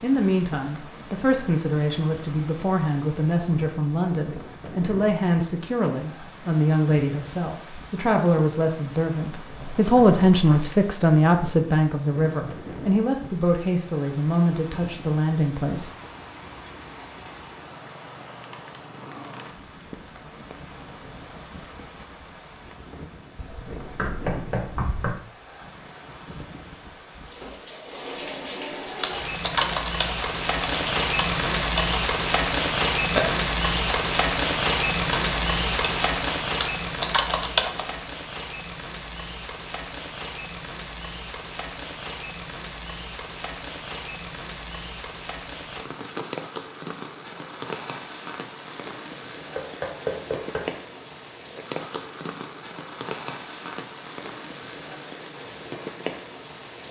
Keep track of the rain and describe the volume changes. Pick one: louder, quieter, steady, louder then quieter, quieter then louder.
louder then quieter.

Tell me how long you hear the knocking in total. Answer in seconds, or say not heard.
4 s.